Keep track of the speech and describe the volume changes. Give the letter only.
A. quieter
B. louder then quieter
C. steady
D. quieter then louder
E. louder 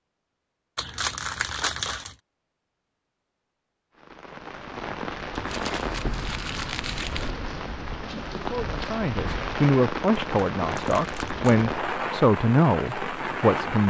C.